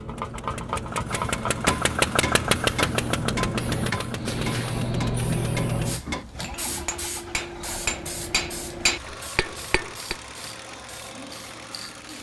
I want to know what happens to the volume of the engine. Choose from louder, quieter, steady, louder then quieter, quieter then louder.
quieter.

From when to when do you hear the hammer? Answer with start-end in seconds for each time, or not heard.
1.1-10.2.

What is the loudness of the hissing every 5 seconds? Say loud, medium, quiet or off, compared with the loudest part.
loud, loud, quiet.